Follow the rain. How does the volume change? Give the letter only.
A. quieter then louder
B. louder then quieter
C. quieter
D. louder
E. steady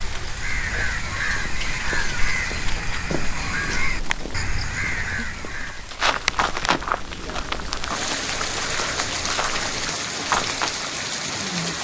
D.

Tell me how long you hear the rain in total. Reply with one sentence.
You can hear the rain for 12 seconds altogether.